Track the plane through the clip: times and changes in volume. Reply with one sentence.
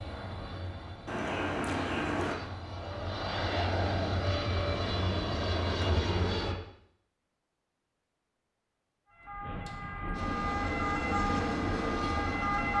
The plane can be heard from 0.0 to 6.5 s, getting louder; and briefly from 10.1 to 12.7 s.